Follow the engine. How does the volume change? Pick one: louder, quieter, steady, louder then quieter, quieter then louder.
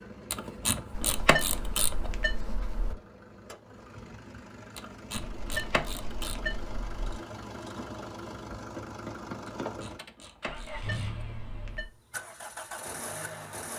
louder.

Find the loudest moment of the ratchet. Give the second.
1 s.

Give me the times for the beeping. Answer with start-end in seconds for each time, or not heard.
0.9-3.0, 5.2-7.1, 10.4-11.9.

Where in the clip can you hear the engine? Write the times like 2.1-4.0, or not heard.
0.0-13.7.